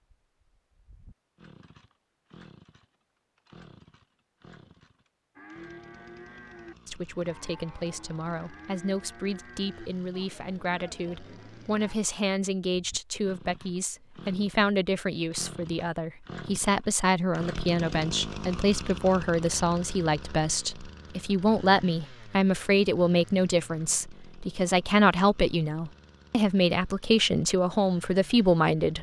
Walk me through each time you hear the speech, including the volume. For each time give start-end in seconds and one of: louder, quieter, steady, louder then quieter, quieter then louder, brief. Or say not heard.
6.8-28.9 louder.